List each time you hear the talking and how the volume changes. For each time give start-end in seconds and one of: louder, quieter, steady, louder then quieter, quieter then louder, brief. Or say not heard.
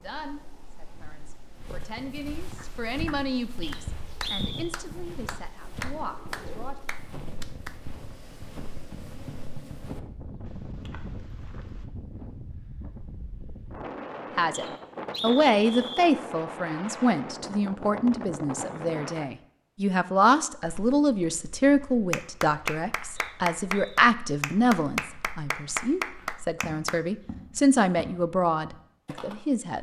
0.0-6.8 louder then quieter
14.3-29.7 steady.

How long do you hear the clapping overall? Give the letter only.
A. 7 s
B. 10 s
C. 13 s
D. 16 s
B.